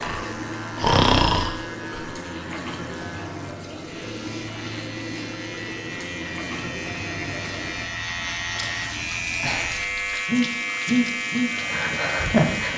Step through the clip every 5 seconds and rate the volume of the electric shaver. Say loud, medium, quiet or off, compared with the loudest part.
medium, loud, loud.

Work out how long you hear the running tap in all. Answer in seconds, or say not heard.
13 s.